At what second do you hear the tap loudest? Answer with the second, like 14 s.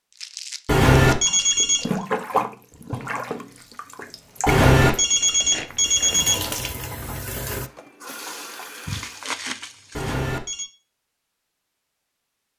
2 s.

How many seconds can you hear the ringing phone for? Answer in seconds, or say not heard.
4 s.